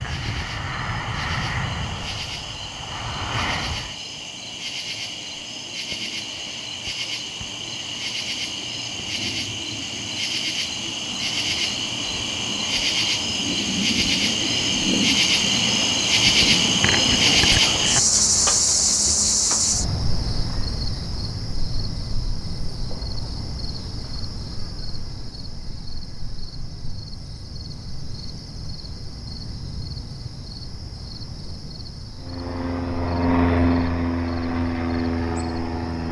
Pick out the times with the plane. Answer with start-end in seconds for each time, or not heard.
0.0-4.0, 32.1-36.0.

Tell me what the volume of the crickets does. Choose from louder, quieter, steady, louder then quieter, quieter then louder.
louder then quieter.